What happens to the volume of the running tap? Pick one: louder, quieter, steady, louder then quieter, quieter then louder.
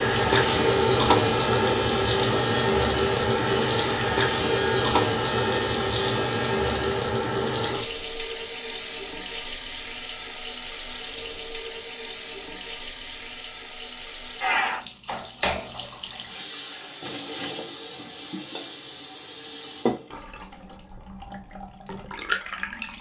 quieter.